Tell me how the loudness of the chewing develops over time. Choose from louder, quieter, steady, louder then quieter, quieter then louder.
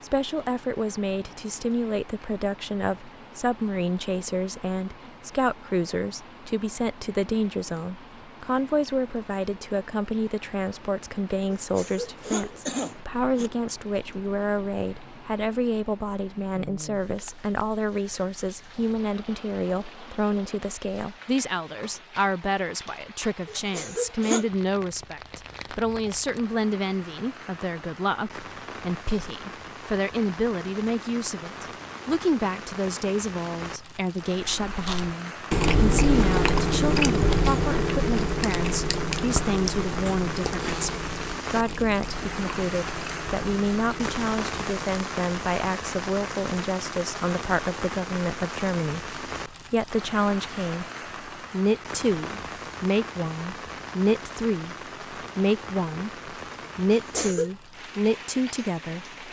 quieter.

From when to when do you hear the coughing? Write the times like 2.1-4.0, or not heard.
11.4-13.5, 23.4-24.4, 57.0-57.5.